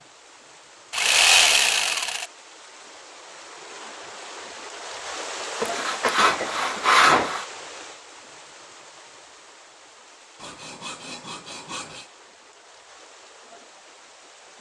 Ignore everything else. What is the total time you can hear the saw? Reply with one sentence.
You can hear the saw for 5 seconds altogether.